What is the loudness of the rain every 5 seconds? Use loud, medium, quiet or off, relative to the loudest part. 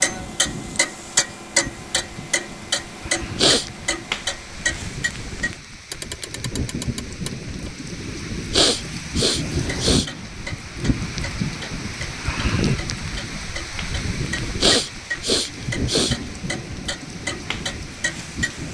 medium, loud, loud, loud.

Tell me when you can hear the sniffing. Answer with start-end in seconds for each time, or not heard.
3.1-3.6, 8.2-10.2, 14.4-16.3.